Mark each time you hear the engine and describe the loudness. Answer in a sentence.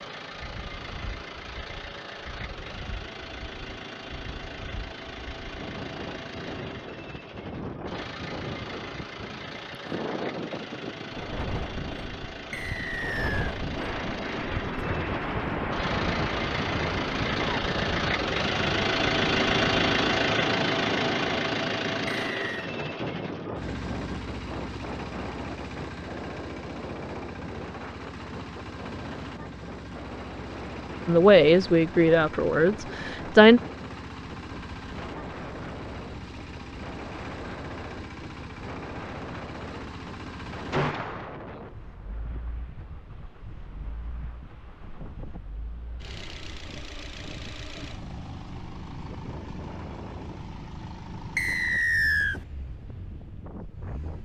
You can hear the engine from 0.0 to 54.2 s, getting louder then quieter.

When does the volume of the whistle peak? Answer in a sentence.
The volume of the whistle peaks at 52 seconds.